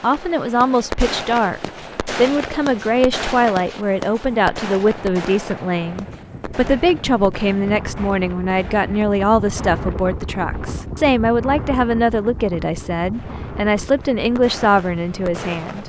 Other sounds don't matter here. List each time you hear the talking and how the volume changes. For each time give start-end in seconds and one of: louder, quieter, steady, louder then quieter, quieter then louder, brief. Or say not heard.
0.0-15.8 steady.